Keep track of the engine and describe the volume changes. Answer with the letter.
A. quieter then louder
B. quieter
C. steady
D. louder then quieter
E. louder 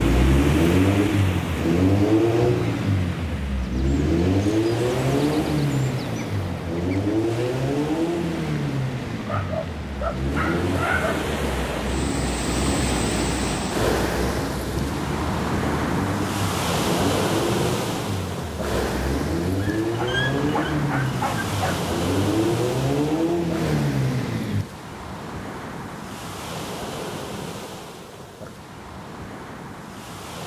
A.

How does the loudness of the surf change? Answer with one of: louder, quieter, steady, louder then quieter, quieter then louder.
louder then quieter.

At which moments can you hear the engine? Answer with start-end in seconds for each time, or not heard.
0.0-24.6.